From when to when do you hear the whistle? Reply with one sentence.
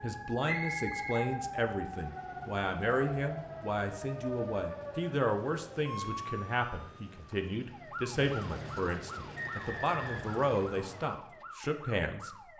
The whistle can be heard from 0.4 to 1.2 s and from 9.3 to 11.1 s.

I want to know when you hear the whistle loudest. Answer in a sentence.
The loudest moment of the whistle is at 1 second.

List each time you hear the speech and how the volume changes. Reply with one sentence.
You can hear the speech from 0.0 to 12.3 s, at a steady volume.